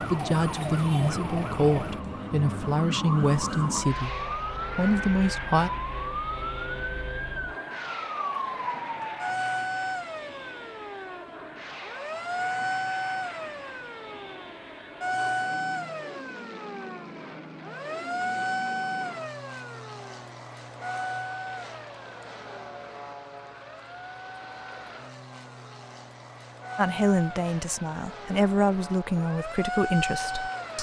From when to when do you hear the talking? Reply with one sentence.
You can hear the talking from 0.1 to 5.7 s and from 26.8 to 30.7 s.